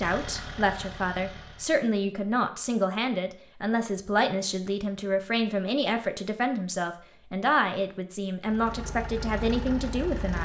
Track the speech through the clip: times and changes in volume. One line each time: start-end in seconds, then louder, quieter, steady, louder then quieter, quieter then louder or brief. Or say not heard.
0.0-10.4 steady.